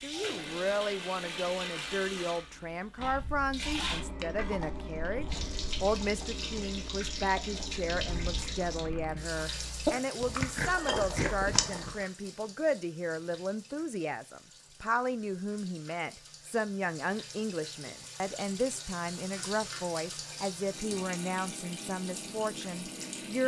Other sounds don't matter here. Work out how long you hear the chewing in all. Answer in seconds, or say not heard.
9 s.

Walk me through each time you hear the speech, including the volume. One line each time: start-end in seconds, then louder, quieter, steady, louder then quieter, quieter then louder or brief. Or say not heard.
0.0-23.4 steady.